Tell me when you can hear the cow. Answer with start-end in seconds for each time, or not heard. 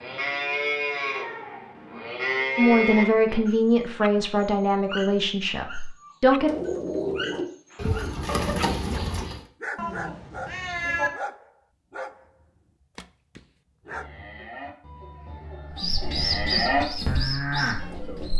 0.0-3.4, 13.8-18.1.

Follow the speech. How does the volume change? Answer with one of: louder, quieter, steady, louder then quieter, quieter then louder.
quieter.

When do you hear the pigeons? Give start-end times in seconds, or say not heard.
6.3-9.4, 15.8-18.3.